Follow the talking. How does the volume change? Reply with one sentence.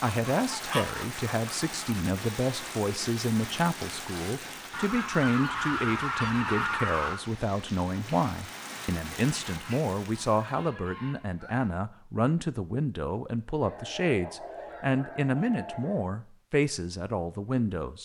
The loudness of the talking stays about the same.